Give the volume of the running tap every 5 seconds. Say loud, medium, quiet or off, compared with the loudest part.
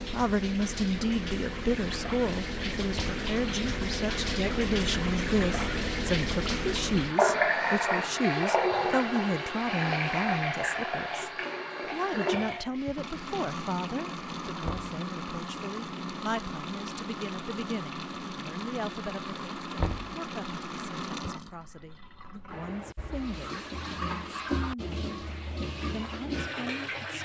medium, loud, medium, medium, medium, medium.